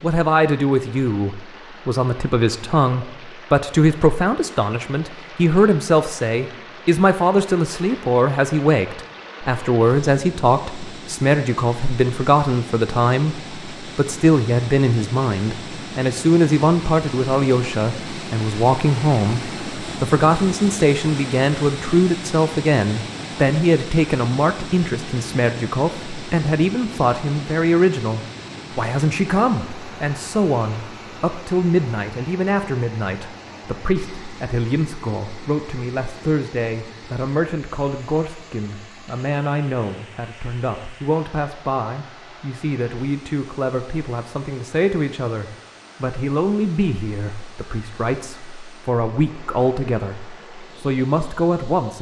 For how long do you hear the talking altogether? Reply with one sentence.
You can hear the talking for 52 seconds altogether.